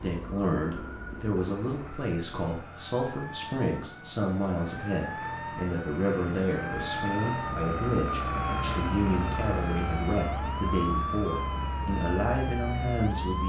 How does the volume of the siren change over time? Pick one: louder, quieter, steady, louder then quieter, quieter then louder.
louder.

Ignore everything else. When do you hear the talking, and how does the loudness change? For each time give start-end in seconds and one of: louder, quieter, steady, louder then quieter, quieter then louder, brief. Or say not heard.
0.0-13.4 steady.